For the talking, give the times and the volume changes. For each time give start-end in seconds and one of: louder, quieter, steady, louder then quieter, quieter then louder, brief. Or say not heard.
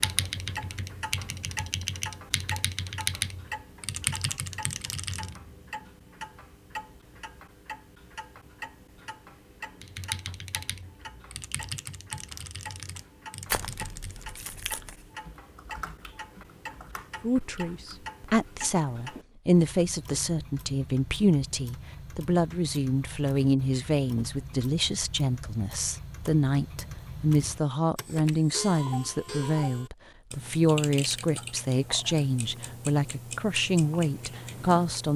17.2-35.1 steady.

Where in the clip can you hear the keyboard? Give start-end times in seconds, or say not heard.
0.0-5.4, 9.8-18.0.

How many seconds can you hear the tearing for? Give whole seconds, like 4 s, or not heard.
2 s.